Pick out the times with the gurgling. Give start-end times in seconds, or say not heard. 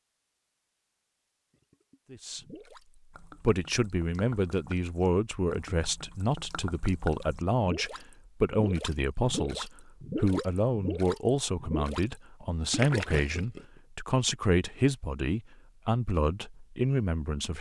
1.7-12.1, 12.7-13.7.